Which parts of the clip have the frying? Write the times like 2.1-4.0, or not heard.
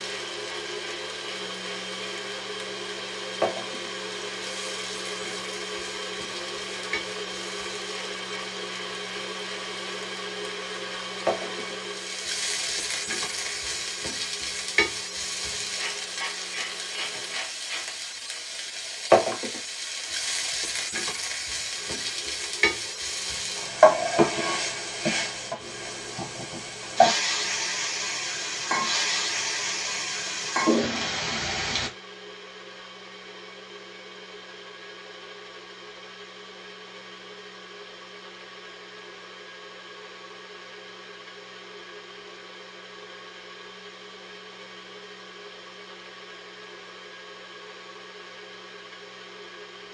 0.0-31.9.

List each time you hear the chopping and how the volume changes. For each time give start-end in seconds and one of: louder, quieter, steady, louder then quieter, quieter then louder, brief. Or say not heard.
not heard.